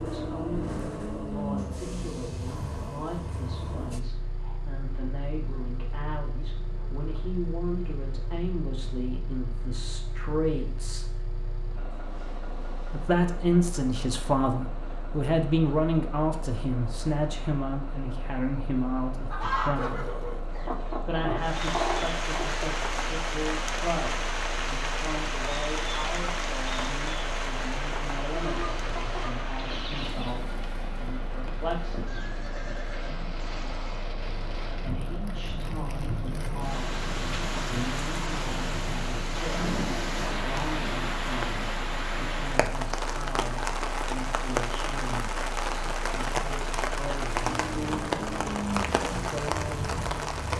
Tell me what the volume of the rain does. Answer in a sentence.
The volume of the rain goes down, then up.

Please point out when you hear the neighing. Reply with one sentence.
You can hear the neighing from 19.8 to 20.8 s and from 32.0 to 34.0 s.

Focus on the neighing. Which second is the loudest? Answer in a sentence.
The loudest moment of the neighing is at 20 seconds.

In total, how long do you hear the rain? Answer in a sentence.
You can hear the rain for 29 seconds altogether.